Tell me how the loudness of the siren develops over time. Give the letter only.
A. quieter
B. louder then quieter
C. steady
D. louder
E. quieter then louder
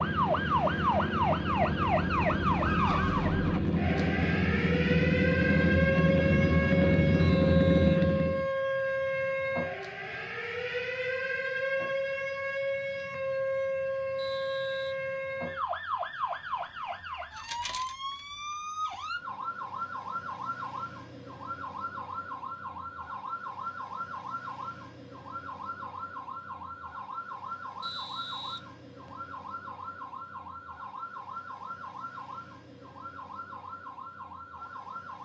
A.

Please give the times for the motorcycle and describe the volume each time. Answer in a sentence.
You can hear the motorcycle from 0.0 to 8.4 s, getting louder.